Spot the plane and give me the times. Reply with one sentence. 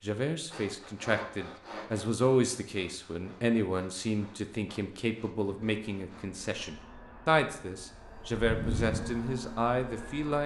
The plane can be heard from 5.4 to 10.4 s.